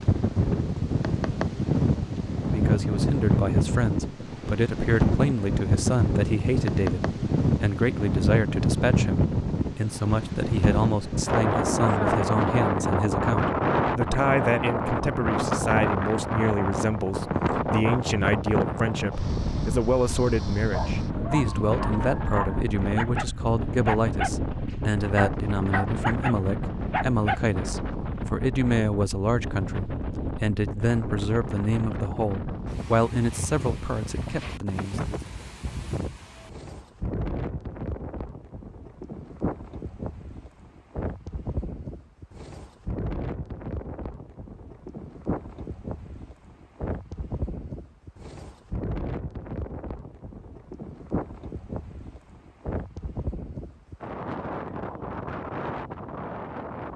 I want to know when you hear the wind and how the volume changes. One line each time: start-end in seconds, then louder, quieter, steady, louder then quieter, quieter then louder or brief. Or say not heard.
0.0-56.9 quieter.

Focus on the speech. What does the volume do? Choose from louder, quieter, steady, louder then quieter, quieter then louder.
steady.